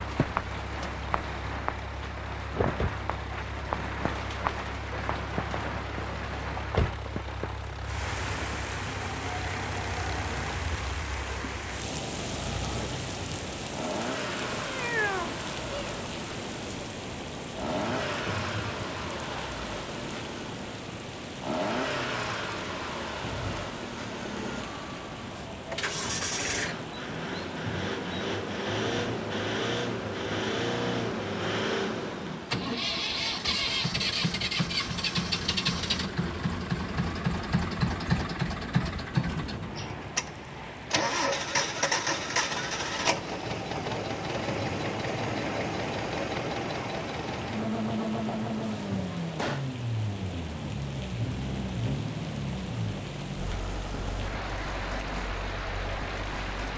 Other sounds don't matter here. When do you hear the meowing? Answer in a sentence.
You can hear the meowing from 14.7 to 15.9 s.